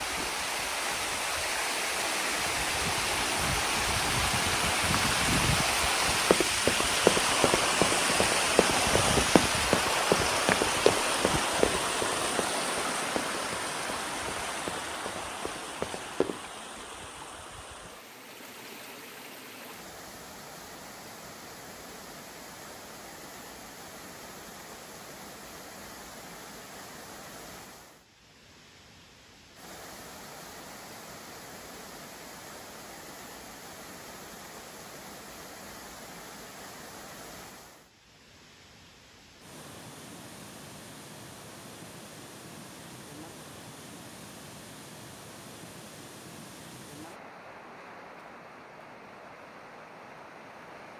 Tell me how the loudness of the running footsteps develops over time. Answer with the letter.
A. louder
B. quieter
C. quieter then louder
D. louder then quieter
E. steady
B.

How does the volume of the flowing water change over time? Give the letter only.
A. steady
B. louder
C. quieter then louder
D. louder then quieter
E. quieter
E.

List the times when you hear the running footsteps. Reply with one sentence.
The running footsteps can be heard from 6.3 to 16.4 s.